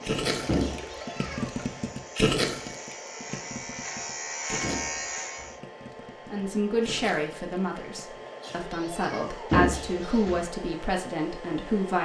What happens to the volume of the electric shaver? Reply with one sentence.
The loudness of the electric shaver goes up.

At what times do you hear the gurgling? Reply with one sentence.
You can hear the gurgling from 0.1 to 8.2 s.